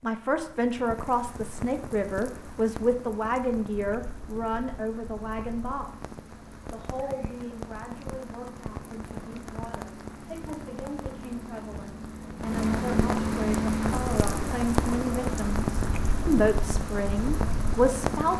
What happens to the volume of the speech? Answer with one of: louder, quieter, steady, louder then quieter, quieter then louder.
quieter then louder.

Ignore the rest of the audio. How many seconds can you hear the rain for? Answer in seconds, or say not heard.
18 s.